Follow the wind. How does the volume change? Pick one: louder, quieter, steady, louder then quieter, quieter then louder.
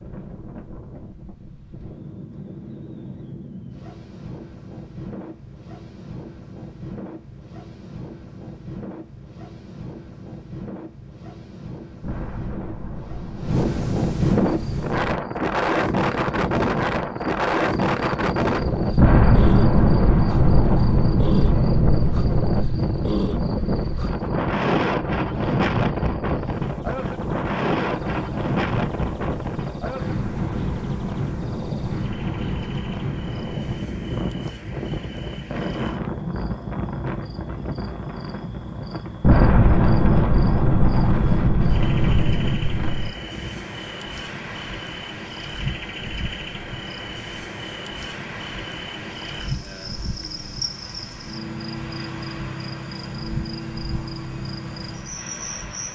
louder then quieter.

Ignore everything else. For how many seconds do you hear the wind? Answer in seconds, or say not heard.
56 s.